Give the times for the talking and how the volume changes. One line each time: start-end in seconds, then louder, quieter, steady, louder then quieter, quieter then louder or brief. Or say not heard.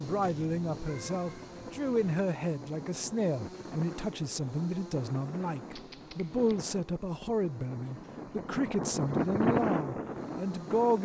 0.0-11.0 steady.